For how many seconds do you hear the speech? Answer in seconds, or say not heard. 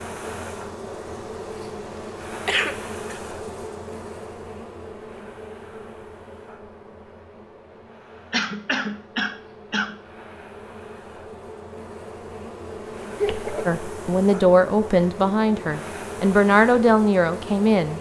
4 s.